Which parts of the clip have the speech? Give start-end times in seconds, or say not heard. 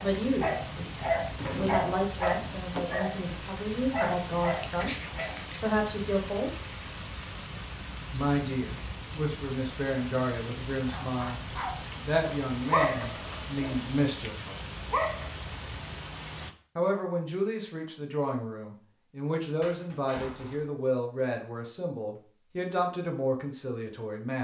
0.0-4.9, 5.6-6.5, 8.1-14.3, 16.8-24.3.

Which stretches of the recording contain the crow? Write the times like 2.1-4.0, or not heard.
not heard.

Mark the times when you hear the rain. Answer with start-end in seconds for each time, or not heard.
0.0-16.6.